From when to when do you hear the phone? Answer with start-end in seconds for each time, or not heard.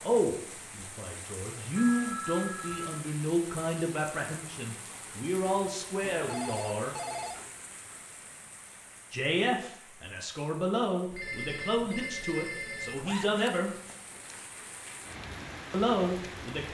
1.8-3.0, 6.0-7.5, 11.1-13.2.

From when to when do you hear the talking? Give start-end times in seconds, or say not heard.
0.0-7.0, 9.1-13.7, 15.7-16.6.